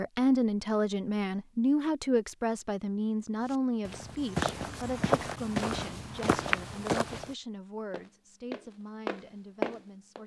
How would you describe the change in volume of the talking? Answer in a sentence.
The loudness of the talking goes down.